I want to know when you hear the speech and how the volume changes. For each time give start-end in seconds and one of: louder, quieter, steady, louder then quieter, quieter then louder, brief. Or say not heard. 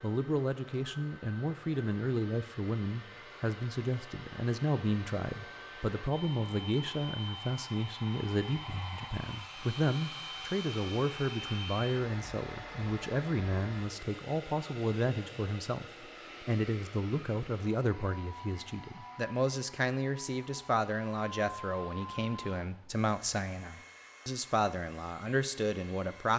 0.0-26.3 steady.